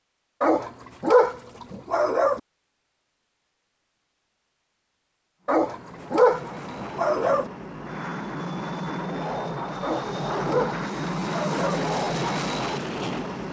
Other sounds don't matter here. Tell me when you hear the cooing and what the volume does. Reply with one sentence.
You can't hear the cooing here.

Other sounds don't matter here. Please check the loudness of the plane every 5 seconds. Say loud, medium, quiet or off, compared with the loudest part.
off, medium, loud.